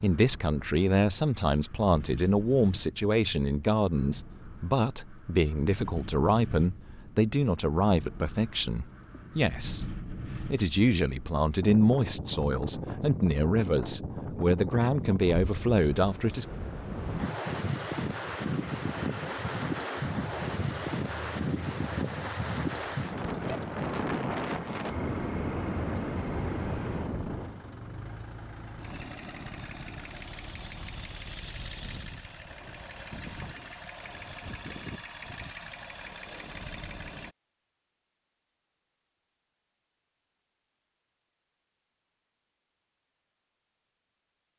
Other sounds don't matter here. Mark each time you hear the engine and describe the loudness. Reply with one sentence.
The engine can be heard from 18.4 to 37.4 s, at a steady volume.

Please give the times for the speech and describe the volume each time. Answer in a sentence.
The speech can be heard from 0.0 to 16.4 s, at a steady volume.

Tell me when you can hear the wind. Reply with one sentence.
The wind can be heard from 0.0 to 27.6 s.